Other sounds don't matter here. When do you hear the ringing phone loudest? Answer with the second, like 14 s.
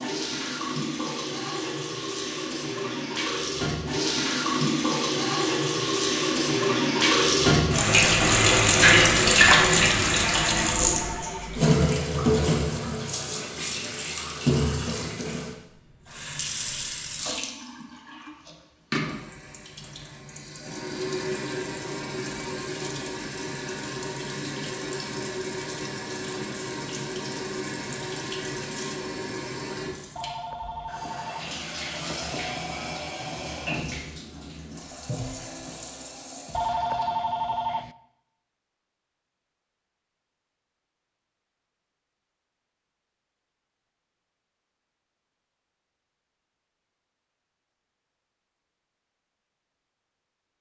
37 s.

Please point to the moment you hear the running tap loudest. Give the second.
9 s.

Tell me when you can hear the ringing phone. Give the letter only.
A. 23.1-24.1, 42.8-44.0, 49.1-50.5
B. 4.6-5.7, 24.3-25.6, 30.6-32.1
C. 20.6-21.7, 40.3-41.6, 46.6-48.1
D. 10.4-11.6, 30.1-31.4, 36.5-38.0
D.